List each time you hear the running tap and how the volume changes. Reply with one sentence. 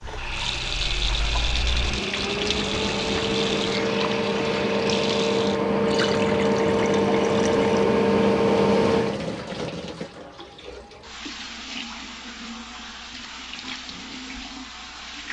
You can hear the running tap from 0.0 to 15.2 s, getting quieter.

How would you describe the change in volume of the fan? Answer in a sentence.
The volume of the fan goes up.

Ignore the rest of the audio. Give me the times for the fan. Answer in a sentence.
The fan can be heard from 0.0 to 9.2 s.